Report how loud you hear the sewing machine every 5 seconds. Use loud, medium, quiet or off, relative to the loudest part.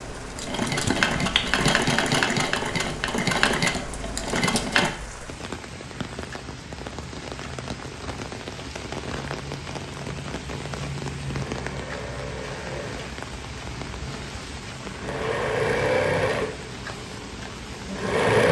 loud, off, quiet, loud.